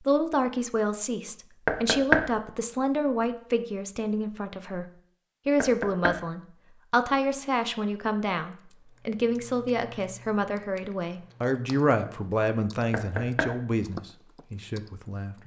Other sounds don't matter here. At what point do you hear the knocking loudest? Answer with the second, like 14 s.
2 s.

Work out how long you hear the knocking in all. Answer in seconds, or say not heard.
2 s.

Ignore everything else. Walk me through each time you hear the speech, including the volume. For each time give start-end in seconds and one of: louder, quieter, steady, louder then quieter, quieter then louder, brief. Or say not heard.
0.0-15.4 steady.